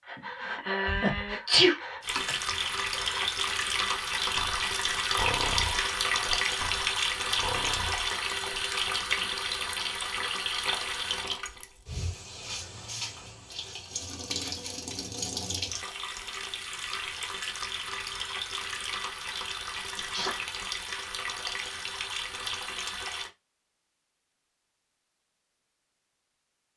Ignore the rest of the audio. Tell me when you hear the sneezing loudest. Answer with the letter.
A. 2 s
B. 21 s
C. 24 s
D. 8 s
A.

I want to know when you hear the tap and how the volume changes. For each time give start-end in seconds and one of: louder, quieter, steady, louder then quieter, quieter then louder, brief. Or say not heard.
2.0-23.3 quieter.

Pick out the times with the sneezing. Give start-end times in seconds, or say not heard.
0.6-2.2, 19.9-20.4.